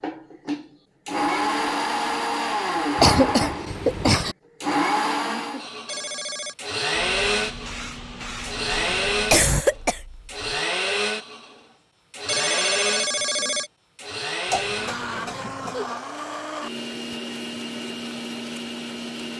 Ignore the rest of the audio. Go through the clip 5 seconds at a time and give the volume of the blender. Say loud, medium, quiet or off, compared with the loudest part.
loud, loud, loud, medium.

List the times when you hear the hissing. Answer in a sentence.
You can hear the hissing from 7.0 to 9.7 s.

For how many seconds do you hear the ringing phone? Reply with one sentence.
The ringing phone can be heard for 2 seconds in total.